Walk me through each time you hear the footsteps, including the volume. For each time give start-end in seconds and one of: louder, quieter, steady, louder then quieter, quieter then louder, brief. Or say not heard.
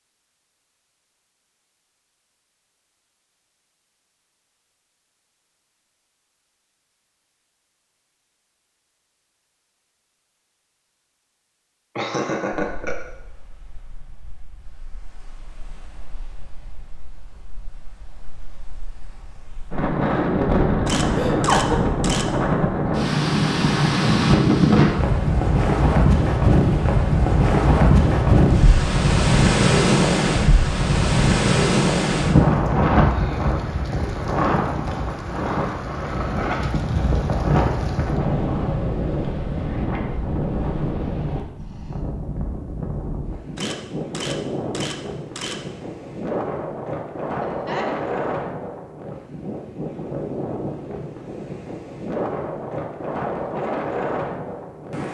not heard.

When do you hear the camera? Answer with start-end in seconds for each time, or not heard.
20.9-22.2, 43.5-45.5.